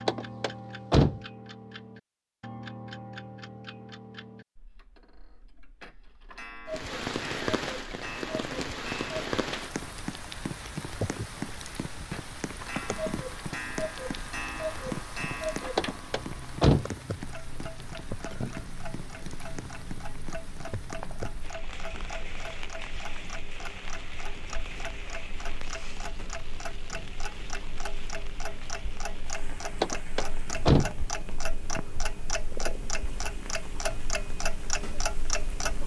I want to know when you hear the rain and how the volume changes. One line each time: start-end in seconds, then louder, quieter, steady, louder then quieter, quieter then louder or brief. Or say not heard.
6.7-35.8 quieter.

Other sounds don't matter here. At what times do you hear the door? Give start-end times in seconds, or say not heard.
0.1-1.2, 15.8-16.9, 29.8-30.9.